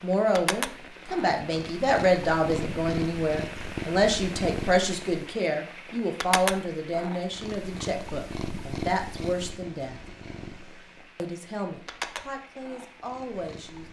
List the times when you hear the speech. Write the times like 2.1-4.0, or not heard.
0.0-10.0, 11.2-13.8.